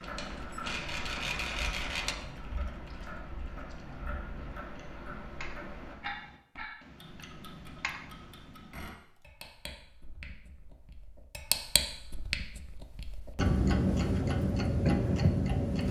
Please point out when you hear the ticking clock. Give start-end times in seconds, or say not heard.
0.0-15.8.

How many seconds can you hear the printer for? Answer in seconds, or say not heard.
2 s.